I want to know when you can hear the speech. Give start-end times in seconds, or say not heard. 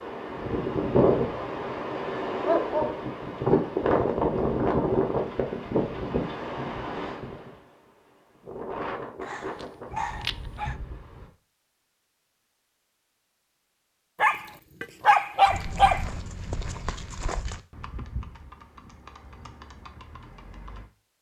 not heard.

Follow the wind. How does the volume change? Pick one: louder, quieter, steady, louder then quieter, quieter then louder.
quieter.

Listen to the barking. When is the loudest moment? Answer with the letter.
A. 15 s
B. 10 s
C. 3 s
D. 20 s
A.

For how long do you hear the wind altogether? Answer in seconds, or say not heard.
11 s.